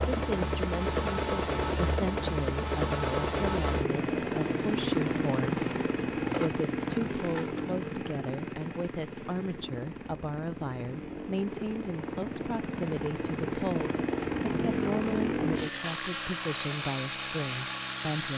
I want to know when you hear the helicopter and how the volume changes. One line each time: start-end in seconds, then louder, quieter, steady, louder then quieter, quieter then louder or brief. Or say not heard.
0.0-18.3 quieter then louder.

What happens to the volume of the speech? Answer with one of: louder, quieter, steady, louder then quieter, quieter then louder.
steady.